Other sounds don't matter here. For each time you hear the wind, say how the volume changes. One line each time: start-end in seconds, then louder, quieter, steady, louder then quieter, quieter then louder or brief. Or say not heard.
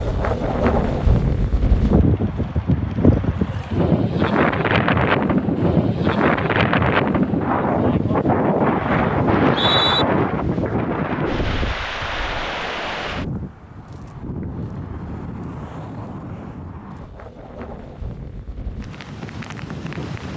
0.0-20.3 quieter.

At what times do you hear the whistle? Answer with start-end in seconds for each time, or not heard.
9.3-10.1.